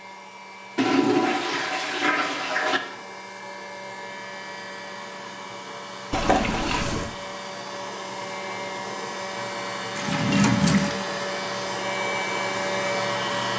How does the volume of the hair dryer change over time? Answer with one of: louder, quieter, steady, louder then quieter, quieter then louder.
louder.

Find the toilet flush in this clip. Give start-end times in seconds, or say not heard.
0.8-2.8, 6.1-7.1, 9.9-10.9.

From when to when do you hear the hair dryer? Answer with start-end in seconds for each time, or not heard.
0.0-13.5.